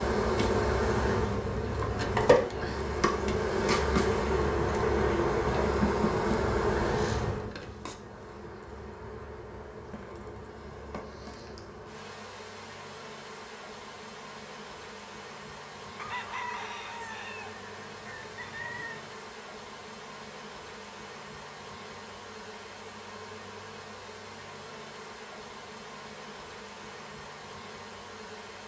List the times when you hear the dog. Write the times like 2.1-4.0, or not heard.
not heard.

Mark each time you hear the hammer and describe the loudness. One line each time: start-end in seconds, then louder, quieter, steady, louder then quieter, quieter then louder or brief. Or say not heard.
not heard.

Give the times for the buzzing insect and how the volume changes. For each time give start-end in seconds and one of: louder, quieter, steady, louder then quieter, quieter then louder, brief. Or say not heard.
0.0-28.6 quieter.